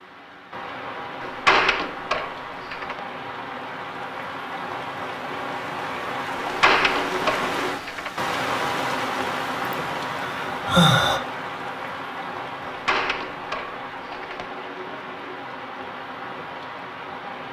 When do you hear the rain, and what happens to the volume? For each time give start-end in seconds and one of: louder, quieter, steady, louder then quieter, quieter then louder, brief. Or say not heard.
0.0-17.4 louder then quieter.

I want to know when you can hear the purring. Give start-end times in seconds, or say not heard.
not heard.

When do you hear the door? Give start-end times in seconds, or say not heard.
1.2-3.0, 6.4-8.1, 12.7-14.5.